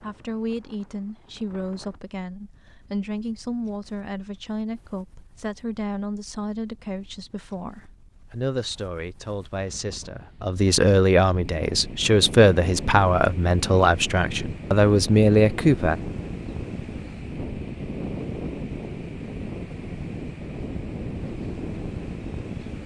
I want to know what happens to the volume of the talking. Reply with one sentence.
The volume of the talking goes up.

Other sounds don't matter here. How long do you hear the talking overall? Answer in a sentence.
The talking can be heard for 16 seconds in total.